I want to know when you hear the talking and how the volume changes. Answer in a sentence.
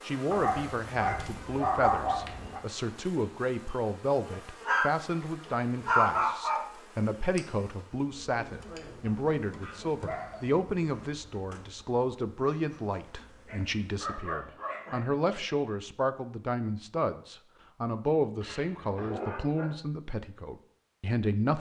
The talking can be heard from 0.0 to 21.5 s, at a steady volume.